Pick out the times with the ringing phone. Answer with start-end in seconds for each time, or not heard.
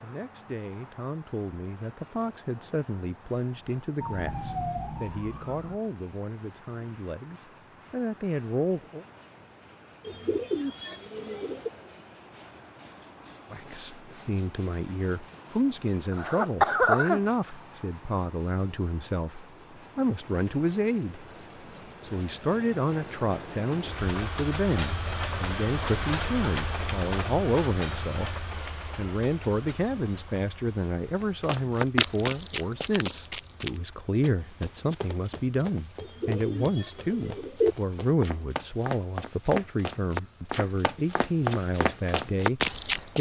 not heard.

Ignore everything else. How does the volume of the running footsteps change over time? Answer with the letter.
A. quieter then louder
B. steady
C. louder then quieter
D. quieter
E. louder
A.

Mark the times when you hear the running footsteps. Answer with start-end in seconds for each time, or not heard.
31.2-43.1.